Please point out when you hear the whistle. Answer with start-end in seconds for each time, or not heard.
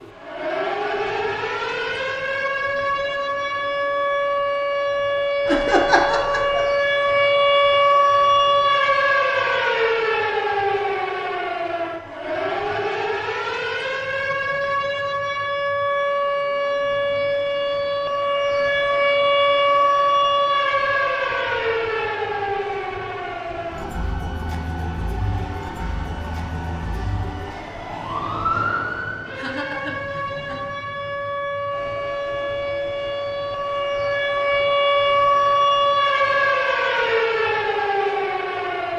not heard.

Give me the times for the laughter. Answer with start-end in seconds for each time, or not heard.
5.5-6.8, 29.4-30.8.